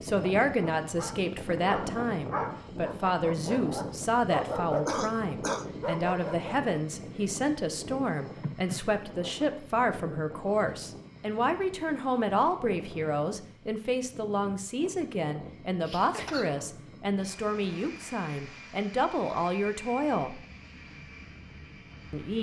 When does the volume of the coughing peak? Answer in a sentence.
The loudest moment of the coughing is at 5 seconds.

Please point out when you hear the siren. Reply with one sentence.
You can't hear the siren here.